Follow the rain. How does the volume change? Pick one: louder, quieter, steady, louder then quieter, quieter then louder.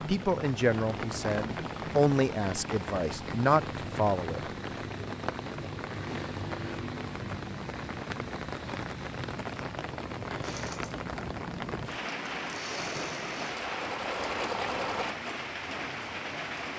steady.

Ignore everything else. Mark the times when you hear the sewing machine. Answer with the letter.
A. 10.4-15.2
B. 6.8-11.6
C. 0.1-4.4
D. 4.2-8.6
A.